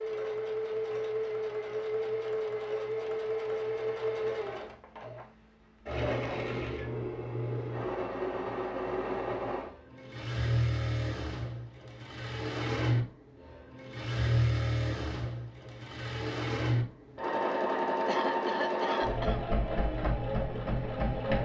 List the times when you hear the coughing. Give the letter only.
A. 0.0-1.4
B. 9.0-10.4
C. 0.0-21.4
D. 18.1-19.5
D.